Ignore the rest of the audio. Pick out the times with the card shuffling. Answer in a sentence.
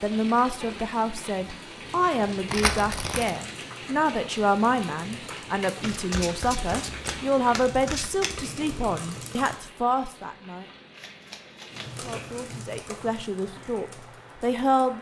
You can hear the card shuffling from 2.5 to 3.4 s, from 5.8 to 8.4 s and from 10.9 to 12.1 s.